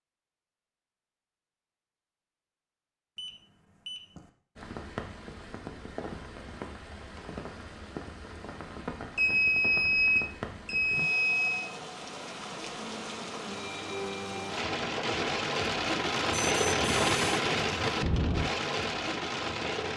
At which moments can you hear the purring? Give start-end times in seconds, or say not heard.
not heard.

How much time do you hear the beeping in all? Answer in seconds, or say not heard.
5 s.